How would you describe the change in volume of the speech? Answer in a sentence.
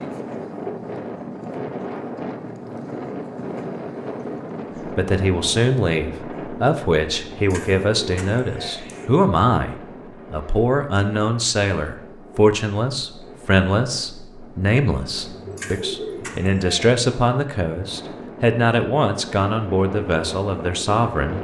The volume of the speech stays about the same.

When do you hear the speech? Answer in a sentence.
The speech can be heard from 4.8 to 21.3 s.